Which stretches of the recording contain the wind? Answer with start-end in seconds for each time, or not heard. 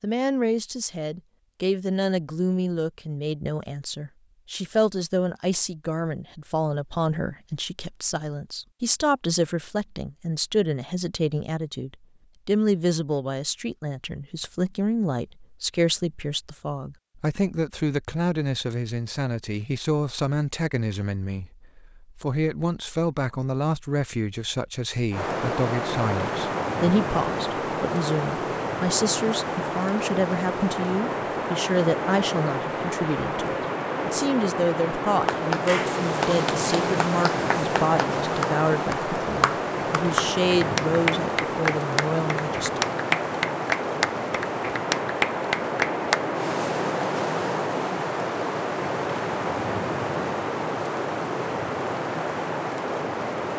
25.1-53.5.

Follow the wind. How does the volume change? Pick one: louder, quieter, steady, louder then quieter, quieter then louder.
steady.